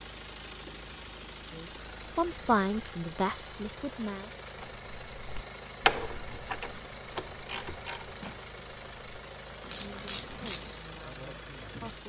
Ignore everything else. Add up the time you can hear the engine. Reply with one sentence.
You can hear the engine for 12 seconds altogether.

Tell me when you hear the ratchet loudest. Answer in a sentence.
The loudest moment of the ratchet is at 6 seconds.